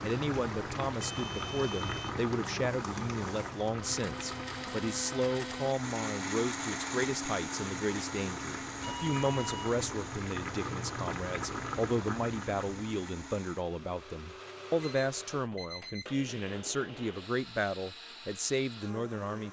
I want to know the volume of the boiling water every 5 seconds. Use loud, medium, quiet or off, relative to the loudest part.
loud, medium, loud, off.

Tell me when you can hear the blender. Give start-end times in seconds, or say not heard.
0.0-19.4.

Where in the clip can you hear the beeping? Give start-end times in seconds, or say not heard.
1.0-2.1, 8.8-9.8, 14.8-16.1.